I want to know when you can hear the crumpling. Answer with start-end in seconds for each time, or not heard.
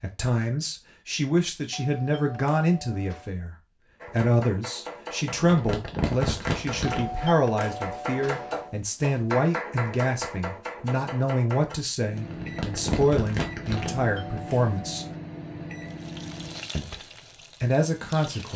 5.4-7.1, 12.2-14.1.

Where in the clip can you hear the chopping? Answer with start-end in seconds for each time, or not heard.
4.0-11.8.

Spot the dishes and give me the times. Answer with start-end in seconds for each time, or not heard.
not heard.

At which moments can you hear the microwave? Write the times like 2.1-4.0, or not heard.
11.9-16.8.